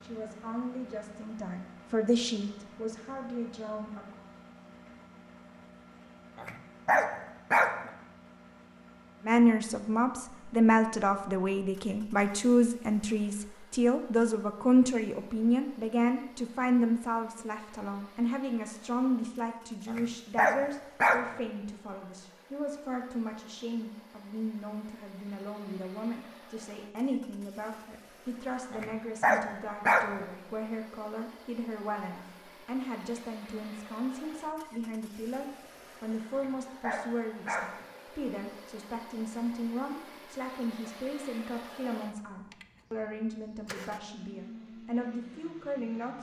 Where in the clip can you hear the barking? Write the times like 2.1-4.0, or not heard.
6.3-7.9, 19.9-21.4, 28.7-30.2, 36.4-37.9.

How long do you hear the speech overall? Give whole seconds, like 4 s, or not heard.
41 s.